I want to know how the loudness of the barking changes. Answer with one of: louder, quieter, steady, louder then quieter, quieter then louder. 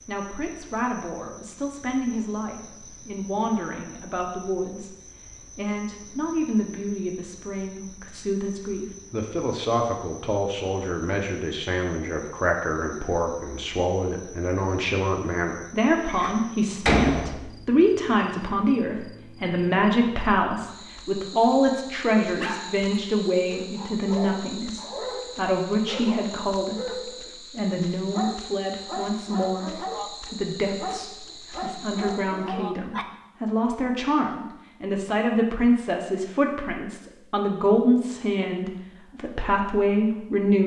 steady.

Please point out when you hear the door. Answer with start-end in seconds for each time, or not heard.
16.1-17.6.